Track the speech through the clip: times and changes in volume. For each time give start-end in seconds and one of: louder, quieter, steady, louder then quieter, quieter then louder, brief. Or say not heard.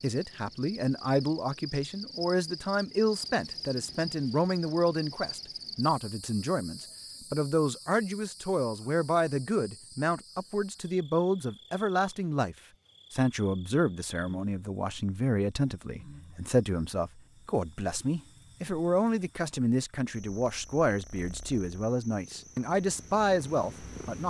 0.0-24.2 steady.